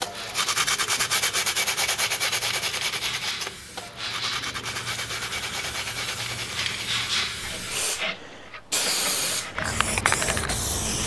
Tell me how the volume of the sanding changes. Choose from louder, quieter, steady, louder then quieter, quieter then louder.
quieter.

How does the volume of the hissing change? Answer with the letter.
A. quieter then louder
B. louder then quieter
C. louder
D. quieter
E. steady
C.